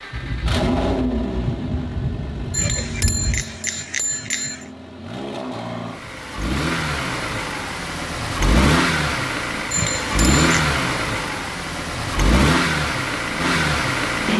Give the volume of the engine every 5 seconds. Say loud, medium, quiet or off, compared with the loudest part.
medium, loud, loud.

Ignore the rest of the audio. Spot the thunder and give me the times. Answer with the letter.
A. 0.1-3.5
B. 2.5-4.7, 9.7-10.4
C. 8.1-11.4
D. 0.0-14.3
A.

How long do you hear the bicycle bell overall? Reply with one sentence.
You can hear the bicycle bell for 3 seconds altogether.